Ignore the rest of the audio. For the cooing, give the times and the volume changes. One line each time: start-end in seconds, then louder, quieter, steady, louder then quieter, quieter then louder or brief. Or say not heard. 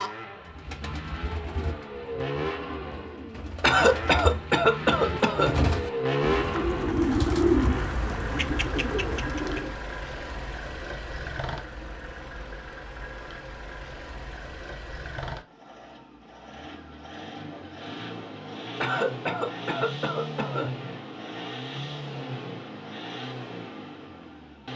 0.5-9.8 louder then quieter.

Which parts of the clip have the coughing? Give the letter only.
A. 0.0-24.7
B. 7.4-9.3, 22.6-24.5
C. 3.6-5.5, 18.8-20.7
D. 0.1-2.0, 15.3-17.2
C.